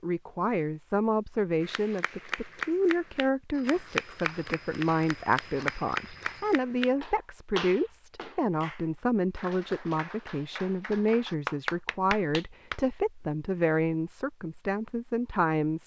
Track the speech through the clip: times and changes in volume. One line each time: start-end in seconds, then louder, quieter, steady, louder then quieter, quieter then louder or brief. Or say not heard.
0.0-15.8 steady.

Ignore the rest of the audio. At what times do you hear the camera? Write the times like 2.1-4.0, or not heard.
not heard.